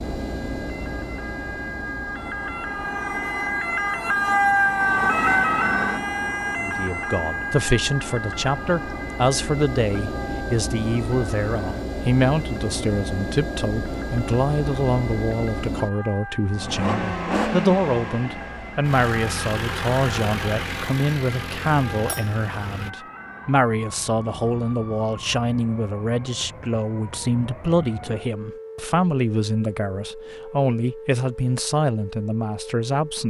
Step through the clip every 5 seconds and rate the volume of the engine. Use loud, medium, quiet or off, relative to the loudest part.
medium, medium, loud, loud, loud, off, off.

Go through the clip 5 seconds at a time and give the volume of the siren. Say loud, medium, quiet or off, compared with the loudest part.
loud, loud, quiet, quiet, quiet, quiet, quiet.